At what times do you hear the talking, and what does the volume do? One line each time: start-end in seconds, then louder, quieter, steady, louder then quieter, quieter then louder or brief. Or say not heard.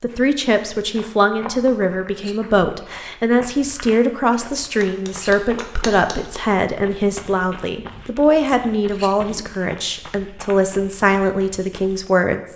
0.0-12.5 steady.